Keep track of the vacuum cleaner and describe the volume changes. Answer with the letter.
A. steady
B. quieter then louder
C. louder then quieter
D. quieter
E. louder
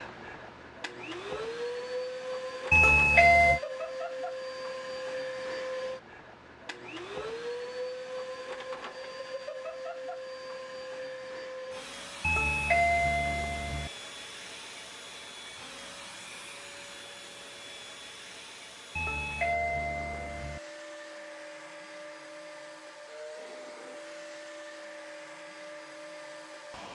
D.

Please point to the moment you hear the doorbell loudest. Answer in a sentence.
The loudest moment of the doorbell is at 3 seconds.